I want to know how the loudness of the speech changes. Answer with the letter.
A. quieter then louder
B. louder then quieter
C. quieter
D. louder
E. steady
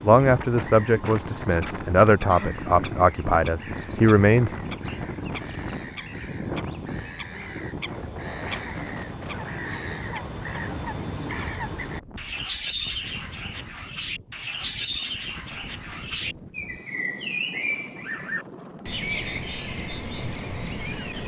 A.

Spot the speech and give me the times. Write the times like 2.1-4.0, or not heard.
0.0-4.5.